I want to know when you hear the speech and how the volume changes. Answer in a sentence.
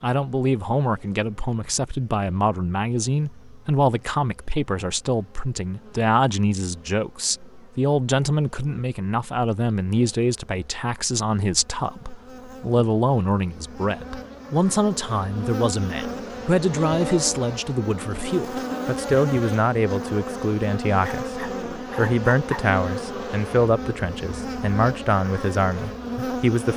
The speech can be heard from 0.0 to 26.7 s, at a steady volume.